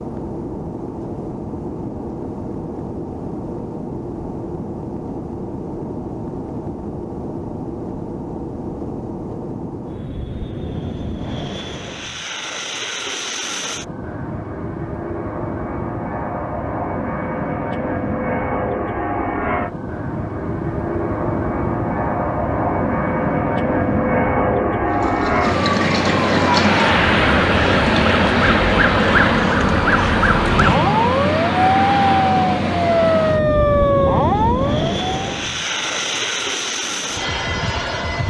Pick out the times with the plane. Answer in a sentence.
You can hear the plane from 0.0 to 38.2 s.